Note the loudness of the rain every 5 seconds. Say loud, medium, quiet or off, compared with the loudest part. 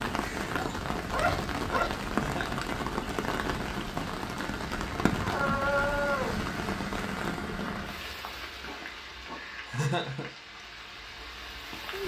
loud, loud, medium.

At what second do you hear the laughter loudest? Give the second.
10 s.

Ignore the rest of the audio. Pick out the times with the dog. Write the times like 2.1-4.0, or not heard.
0.5-2.0, 5.2-6.3, 8.6-9.3.